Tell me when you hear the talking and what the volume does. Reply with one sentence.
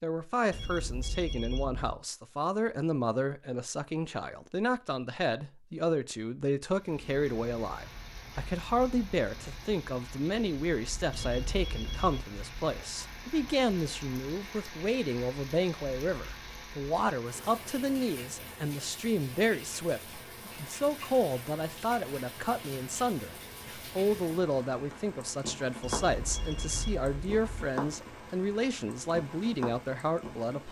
You can hear the talking from 0.0 to 30.6 s, at a steady volume.